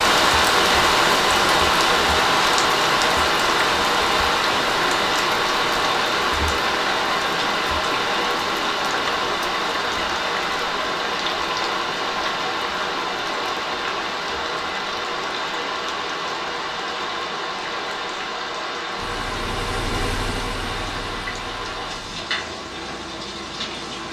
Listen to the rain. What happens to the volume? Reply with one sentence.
The volume of the rain goes down.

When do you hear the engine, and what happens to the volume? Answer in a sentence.
The engine can be heard from 18.9 to 24.0 s, getting quieter.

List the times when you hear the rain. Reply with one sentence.
You can hear the rain from 0.0 to 24.0 s.